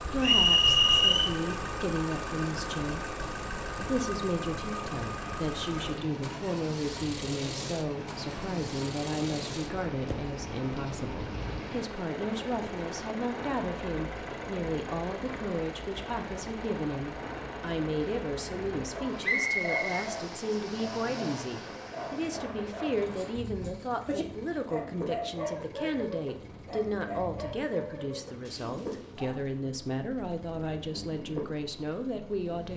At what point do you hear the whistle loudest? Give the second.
1 s.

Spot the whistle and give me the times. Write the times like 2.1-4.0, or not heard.
0.2-1.3, 19.2-19.9.